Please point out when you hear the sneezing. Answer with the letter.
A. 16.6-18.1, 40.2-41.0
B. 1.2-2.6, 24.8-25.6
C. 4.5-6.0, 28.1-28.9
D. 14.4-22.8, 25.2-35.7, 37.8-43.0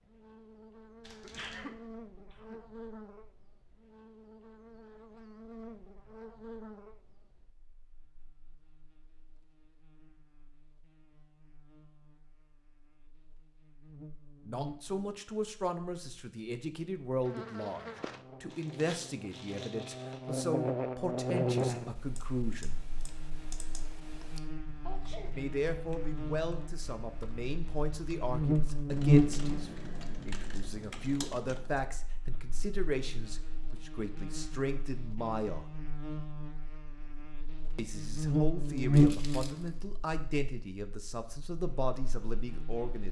B.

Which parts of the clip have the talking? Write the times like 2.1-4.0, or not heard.
14.4-22.8, 25.2-35.7, 37.8-43.0.